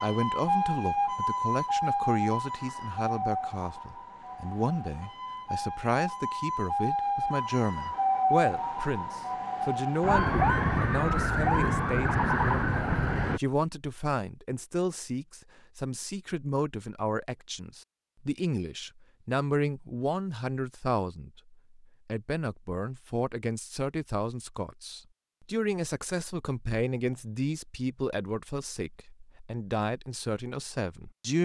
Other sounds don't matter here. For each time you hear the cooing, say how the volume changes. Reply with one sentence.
You can't hear the cooing here.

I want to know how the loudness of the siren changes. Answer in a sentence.
The volume of the siren goes down, then up.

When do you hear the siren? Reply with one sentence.
You can hear the siren from 0.0 to 13.4 s.